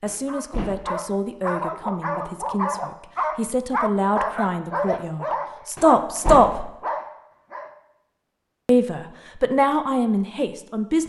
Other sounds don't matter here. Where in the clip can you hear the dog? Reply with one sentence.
You can hear the dog from 0.2 to 7.7 s.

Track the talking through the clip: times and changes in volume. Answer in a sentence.
You can hear the talking from 0.0 to 6.7 s, getting louder; and briefly from 8.7 to 11.0 s.